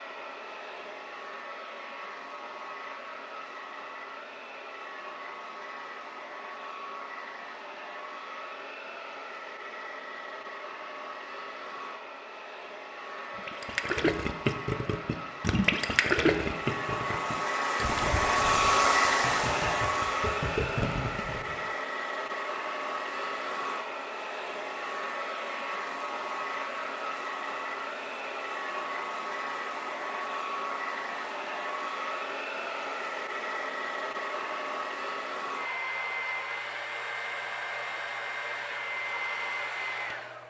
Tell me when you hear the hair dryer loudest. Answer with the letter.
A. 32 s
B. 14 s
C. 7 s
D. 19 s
D.